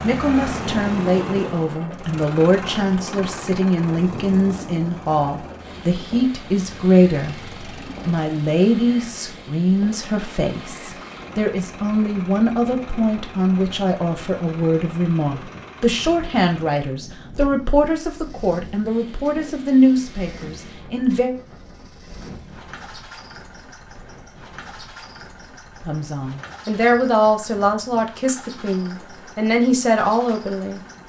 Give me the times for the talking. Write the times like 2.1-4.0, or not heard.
0.0-7.3, 8.1-21.4, 25.9-30.8.